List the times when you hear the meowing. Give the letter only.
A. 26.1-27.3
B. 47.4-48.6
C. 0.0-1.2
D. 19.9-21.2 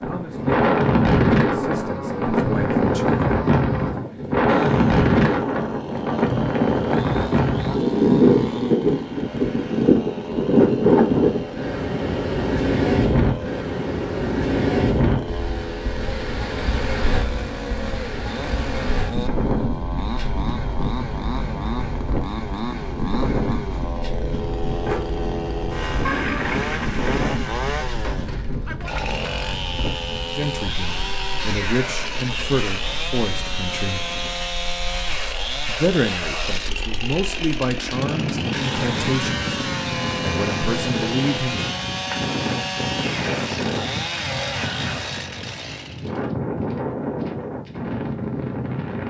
A.